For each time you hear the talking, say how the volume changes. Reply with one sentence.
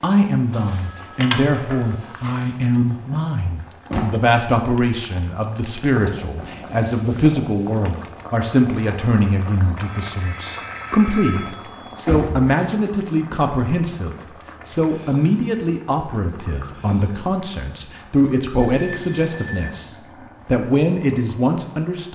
You can hear the talking from 0.0 to 22.1 s, at a steady volume.